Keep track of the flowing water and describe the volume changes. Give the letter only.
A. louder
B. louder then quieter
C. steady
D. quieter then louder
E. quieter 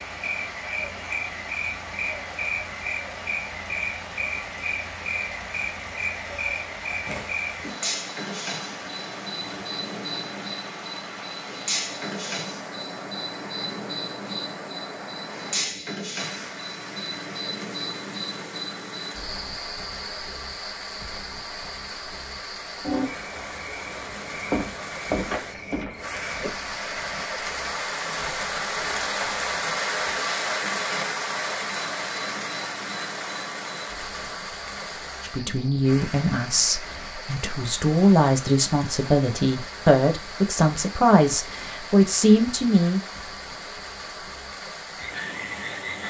B.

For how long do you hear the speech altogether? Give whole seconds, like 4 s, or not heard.
8 s.